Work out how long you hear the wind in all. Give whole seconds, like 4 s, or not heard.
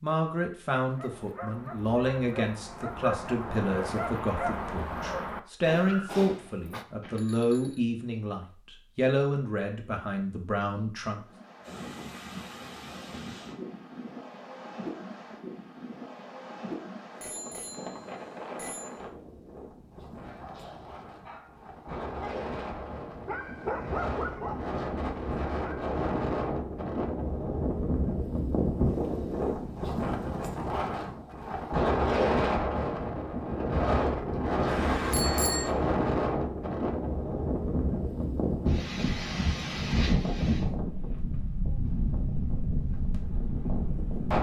33 s.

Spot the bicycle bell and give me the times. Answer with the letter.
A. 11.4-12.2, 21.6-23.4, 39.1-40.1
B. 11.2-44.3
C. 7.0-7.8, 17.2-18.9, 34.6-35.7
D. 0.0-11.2
C.